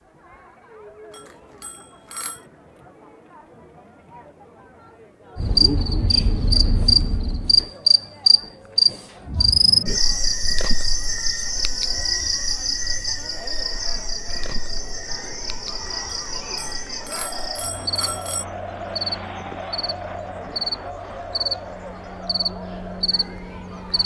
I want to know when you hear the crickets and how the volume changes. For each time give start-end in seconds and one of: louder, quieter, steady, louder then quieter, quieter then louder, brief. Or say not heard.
5.3-24.0 quieter.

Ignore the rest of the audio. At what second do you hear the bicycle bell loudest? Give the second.
18 s.